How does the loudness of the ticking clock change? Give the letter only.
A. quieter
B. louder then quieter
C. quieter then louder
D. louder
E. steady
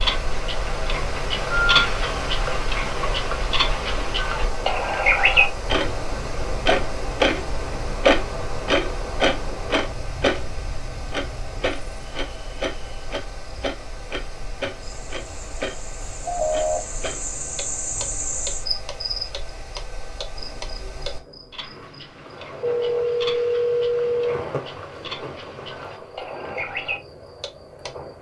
A.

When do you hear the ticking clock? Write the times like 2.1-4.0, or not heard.
0.0-27.9.